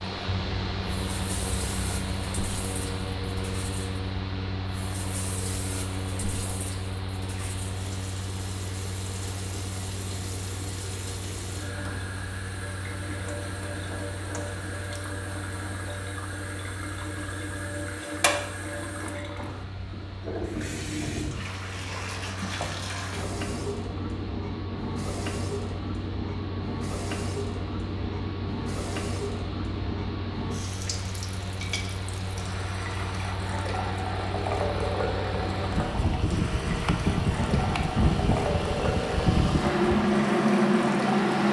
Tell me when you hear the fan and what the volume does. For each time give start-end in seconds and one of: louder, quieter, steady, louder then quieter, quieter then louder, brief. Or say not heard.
0.0-41.4 quieter then louder.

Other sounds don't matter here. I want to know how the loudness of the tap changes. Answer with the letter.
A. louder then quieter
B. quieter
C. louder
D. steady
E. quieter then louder
C.